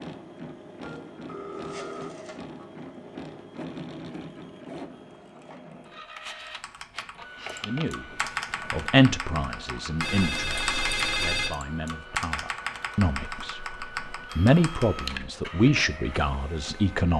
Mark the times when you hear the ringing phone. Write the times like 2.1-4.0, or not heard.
0.8-2.6, 10.0-11.5.